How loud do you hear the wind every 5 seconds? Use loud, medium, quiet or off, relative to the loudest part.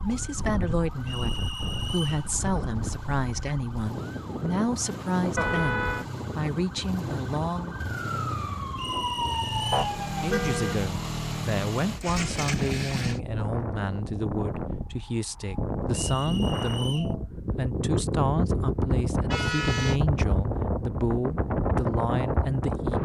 medium, medium, medium, loud, loud.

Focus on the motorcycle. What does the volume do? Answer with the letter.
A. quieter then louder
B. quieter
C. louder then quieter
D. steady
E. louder
E.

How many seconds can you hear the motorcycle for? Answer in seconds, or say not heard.
13 s.